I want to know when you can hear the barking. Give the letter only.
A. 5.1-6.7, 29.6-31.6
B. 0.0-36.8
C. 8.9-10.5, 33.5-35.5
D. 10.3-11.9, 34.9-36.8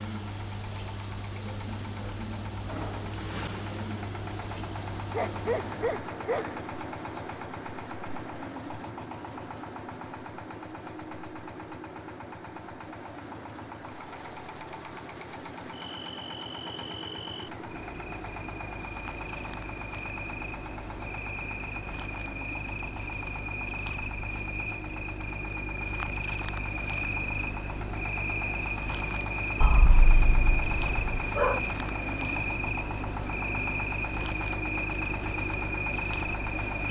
A.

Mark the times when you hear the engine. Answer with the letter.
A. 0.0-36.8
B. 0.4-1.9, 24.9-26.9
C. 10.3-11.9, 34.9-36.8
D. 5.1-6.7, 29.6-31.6
A.